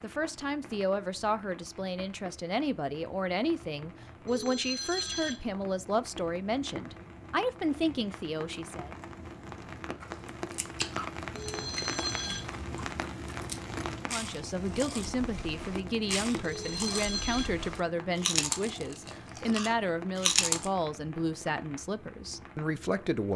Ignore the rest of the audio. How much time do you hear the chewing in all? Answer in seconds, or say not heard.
11 s.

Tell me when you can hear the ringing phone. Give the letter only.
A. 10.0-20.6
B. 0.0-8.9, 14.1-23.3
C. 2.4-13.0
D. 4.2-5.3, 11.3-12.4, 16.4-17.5
D.